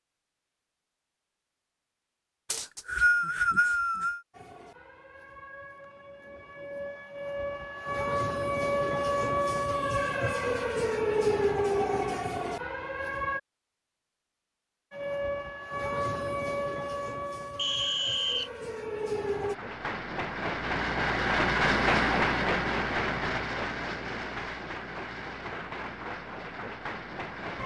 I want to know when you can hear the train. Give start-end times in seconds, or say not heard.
19.4-27.6.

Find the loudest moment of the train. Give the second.
22 s.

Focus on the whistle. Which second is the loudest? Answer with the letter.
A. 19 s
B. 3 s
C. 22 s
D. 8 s
B.